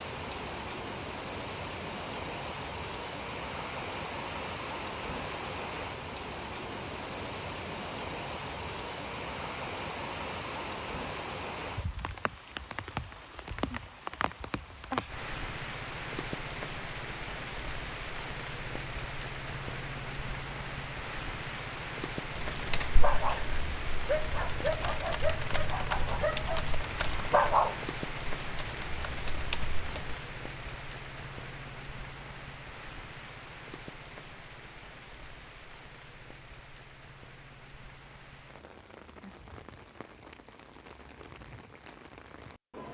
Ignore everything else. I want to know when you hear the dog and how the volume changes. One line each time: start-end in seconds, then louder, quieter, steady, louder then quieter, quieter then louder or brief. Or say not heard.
22.9-27.8 quieter.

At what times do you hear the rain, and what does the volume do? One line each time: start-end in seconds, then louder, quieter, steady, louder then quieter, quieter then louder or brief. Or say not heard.
0.0-42.8 quieter.